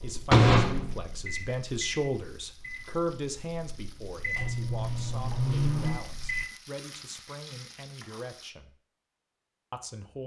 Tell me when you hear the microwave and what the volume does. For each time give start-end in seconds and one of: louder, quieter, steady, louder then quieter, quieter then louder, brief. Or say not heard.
0.0-6.5 quieter then louder.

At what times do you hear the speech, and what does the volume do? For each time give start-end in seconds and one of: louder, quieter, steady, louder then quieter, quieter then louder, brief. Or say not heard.
0.0-8.8 quieter
9.7-10.2 brief.